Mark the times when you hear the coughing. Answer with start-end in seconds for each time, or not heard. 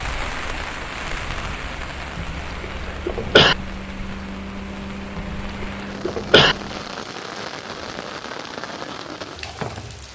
2.1-3.5, 5.2-6.5.